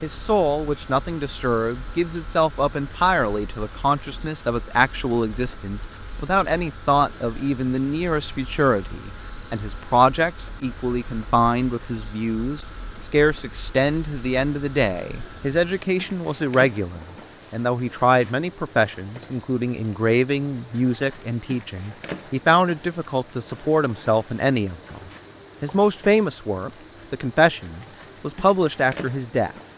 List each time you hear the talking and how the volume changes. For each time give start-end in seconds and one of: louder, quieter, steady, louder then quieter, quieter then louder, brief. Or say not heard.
0.0-29.6 steady.